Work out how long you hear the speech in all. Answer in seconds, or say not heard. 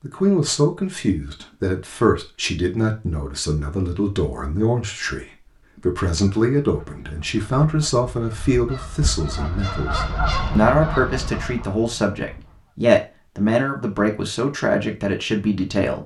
16 s.